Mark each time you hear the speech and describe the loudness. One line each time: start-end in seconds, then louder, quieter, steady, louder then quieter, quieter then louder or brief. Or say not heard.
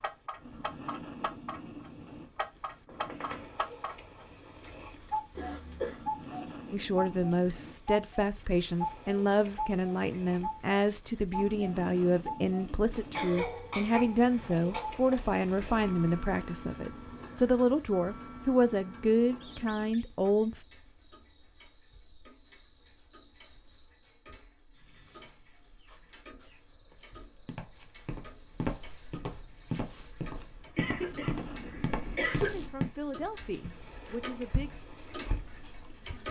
6.7-20.6 steady
32.5-34.9 brief.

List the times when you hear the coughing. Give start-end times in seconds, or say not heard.
5.3-6.0, 13.1-14.8, 30.8-32.5.